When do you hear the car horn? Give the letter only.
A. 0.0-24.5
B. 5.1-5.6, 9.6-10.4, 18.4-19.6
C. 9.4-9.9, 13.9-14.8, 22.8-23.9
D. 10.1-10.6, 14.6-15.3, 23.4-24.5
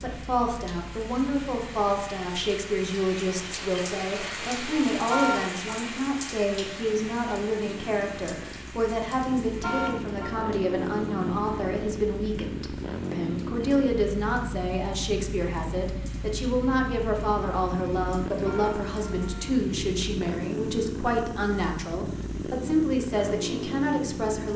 B.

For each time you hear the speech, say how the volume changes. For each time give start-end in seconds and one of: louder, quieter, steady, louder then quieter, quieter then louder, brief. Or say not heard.
0.0-24.5 steady.